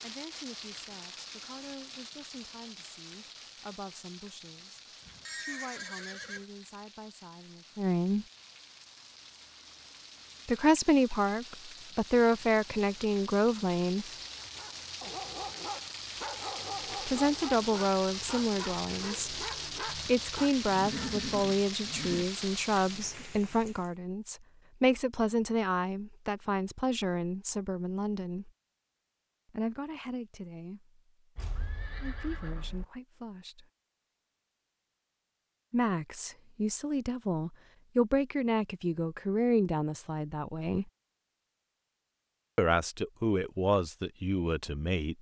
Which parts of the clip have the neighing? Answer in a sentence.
You can hear the neighing from 5.0 to 6.5 s, from 20.6 to 22.2 s and from 31.4 to 32.9 s.